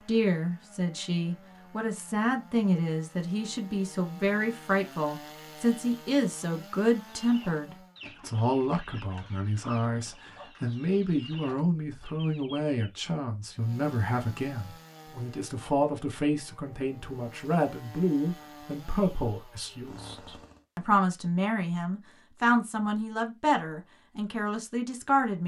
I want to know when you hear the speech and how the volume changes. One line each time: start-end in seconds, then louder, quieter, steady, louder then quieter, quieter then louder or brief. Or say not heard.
0.1-25.4 steady.